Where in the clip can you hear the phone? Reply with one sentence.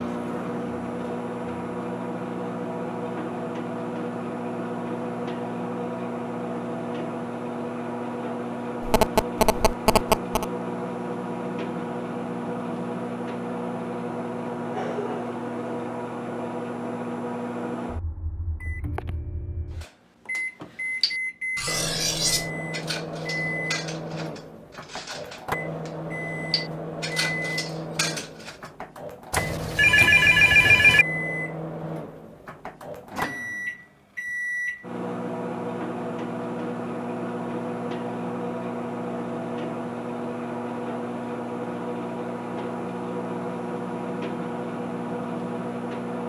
You can hear the phone from 8.8 to 10.4 s and from 29.3 to 31.1 s.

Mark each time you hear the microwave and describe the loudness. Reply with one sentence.
The microwave can be heard from 0.0 to 46.2 s, at a steady volume.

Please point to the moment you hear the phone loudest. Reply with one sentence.
The loudest moment of the phone is at 31 seconds.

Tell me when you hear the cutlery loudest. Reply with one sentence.
The volume of the cutlery peaks at 22 seconds.